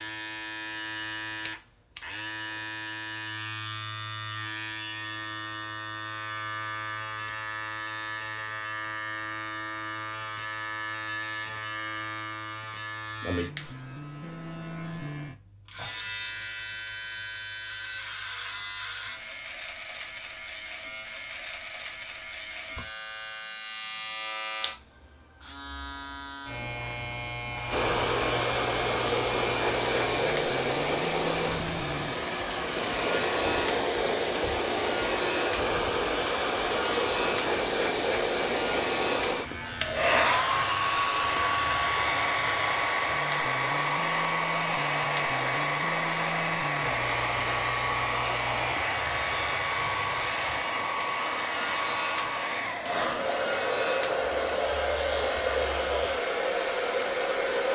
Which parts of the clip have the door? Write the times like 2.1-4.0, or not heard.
not heard.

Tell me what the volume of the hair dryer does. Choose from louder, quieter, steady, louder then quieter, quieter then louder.
steady.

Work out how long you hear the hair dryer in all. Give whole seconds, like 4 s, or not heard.
30 s.